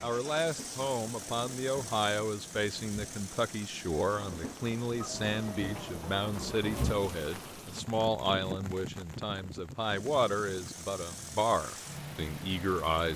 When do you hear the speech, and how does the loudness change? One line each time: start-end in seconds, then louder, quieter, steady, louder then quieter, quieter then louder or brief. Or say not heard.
0.0-13.1 steady.